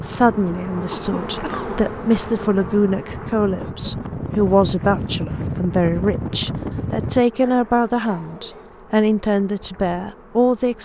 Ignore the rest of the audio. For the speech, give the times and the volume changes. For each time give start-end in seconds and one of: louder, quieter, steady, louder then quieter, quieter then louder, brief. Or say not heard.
0.0-10.8 steady.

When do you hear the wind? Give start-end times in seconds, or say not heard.
0.0-7.2.